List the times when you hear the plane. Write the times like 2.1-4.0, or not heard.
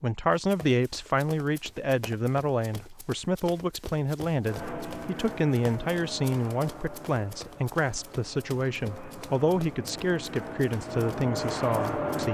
4.4-12.2.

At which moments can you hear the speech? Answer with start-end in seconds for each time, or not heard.
0.0-12.2.